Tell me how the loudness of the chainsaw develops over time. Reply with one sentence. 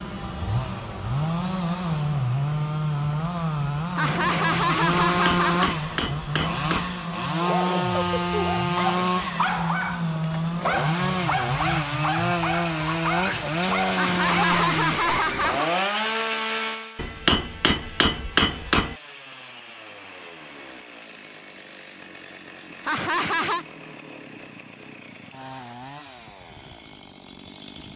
The loudness of the chainsaw goes down.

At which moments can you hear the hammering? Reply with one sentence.
You can hear the hammering from 5.0 to 7.0 s and from 16.9 to 18.9 s.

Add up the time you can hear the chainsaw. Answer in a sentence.
You can hear the chainsaw for 28 seconds altogether.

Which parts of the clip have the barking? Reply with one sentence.
You can hear the barking from 7.4 to 15.6 s.